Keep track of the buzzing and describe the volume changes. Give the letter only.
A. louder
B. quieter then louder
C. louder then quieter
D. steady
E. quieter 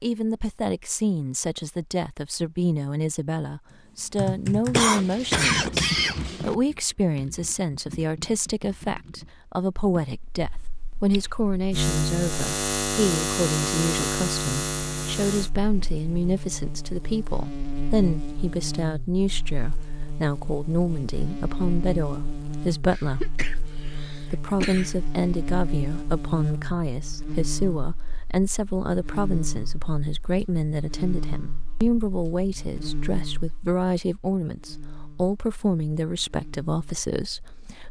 E.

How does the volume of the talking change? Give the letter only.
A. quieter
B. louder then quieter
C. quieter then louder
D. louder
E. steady
E.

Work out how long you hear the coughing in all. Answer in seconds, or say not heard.
4 s.